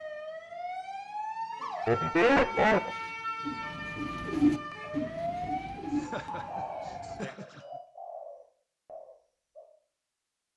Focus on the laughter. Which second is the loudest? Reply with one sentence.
The loudest moment of the laughter is at 2 seconds.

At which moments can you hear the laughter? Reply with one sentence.
The laughter can be heard from 1.9 to 2.9 s and from 5.4 to 7.6 s.